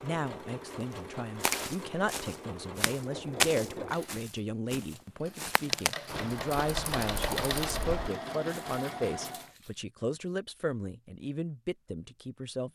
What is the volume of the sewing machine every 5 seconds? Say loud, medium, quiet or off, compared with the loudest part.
medium, loud, off.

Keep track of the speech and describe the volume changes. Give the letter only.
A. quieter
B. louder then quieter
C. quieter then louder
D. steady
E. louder
D.